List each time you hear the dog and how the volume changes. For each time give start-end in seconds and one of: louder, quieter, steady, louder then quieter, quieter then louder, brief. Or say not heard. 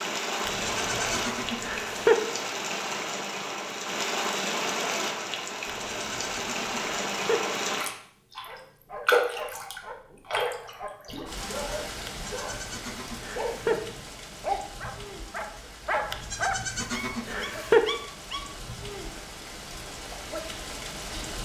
8.4-18.6 louder.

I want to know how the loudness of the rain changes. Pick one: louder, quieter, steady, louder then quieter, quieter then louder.
quieter.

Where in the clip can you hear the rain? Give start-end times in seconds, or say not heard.
0.0-21.3.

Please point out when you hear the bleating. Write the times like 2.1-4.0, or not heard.
0.5-2.2, 5.7-7.4, 12.1-13.8, 16.1-17.9.